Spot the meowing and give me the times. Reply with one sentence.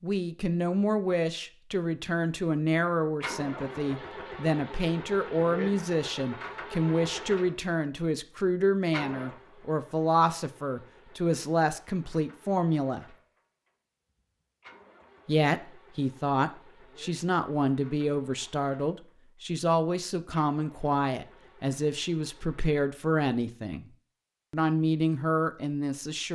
The meowing can't be heard in this clip.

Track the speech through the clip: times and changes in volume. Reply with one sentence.
The speech can be heard from 0.0 to 13.2 s, at a steady volume; from 15.2 to 23.9 s, at a steady volume; and briefly from 24.5 to 26.3 s.